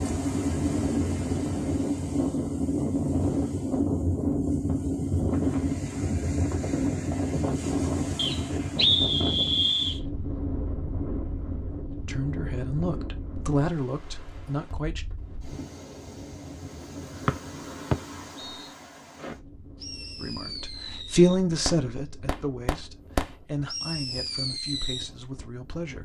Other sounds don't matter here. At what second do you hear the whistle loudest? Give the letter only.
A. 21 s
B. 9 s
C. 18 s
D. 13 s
B.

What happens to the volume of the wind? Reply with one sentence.
The volume of the wind goes down.